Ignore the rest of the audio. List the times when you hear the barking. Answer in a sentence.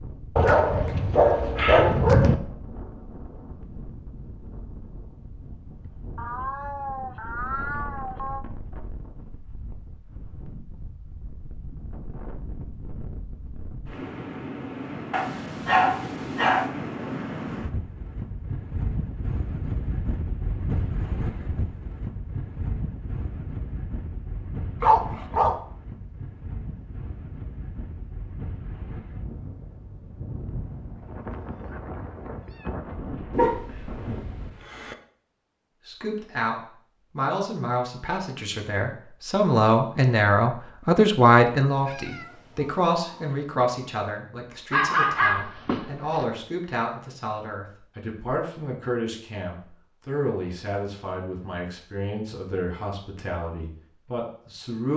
You can hear the barking from 0.3 to 2.4 s, from 15.1 to 16.7 s, from 24.8 to 25.6 s, from 33.4 to 35.0 s and from 44.7 to 46.2 s.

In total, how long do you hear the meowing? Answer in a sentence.
The meowing can be heard for 6 seconds in total.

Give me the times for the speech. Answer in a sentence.
The speech can be heard from 35.9 to 54.9 s.